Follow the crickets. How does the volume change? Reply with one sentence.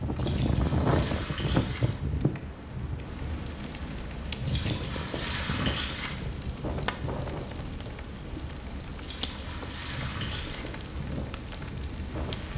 The volume of the crickets stays about the same.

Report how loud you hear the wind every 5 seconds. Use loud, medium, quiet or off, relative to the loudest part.
loud, medium, medium.